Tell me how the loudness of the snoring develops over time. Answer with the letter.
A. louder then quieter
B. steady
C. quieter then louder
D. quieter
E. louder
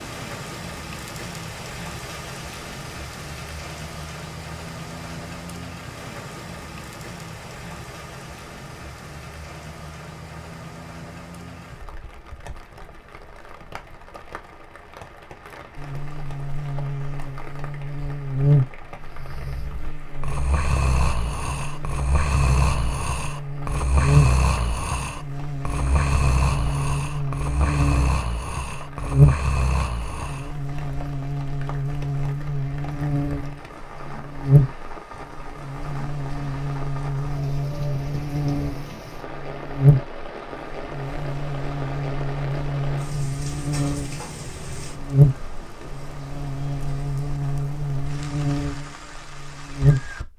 B.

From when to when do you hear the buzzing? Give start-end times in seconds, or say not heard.
15.8-50.2.